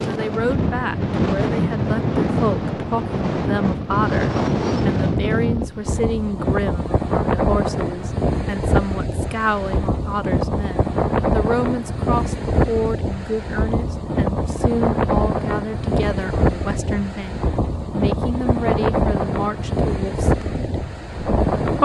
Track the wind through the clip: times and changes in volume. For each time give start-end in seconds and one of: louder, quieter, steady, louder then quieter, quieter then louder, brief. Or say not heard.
0.0-21.7 steady.